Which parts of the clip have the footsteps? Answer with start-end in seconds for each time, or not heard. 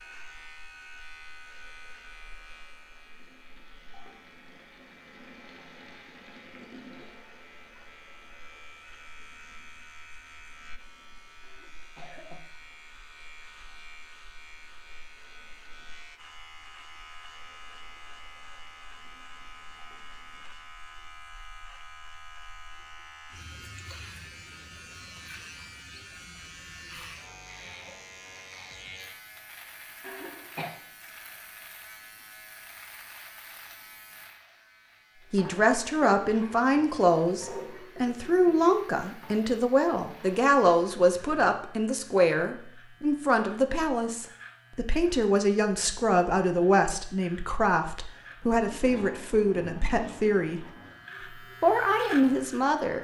not heard.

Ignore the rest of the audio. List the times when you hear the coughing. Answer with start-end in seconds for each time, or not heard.
11.4-12.5, 30.0-30.7.